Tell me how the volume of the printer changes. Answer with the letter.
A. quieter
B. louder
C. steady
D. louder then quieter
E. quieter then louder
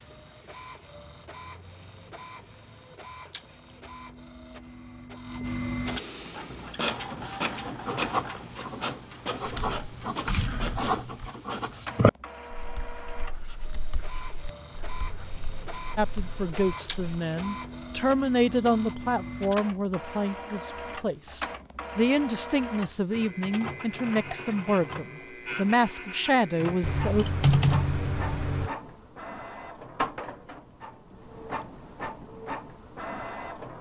C.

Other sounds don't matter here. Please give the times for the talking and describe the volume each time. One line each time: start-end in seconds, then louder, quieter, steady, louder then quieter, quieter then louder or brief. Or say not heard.
15.9-27.2 steady.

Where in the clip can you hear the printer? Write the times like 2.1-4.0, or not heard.
0.0-33.7.